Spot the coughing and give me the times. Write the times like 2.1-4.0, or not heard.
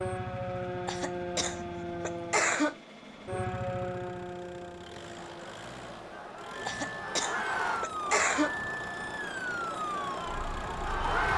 0.8-2.8, 6.7-8.6.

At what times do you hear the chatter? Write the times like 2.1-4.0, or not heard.
5.1-11.3.